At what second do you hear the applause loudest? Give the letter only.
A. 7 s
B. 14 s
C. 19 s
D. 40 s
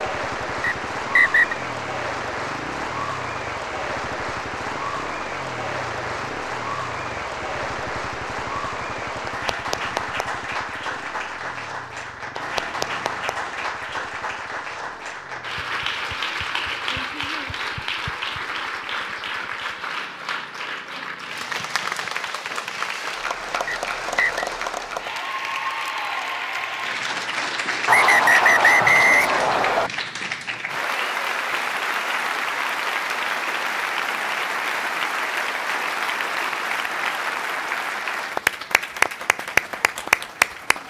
D.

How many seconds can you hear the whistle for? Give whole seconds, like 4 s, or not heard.
4 s.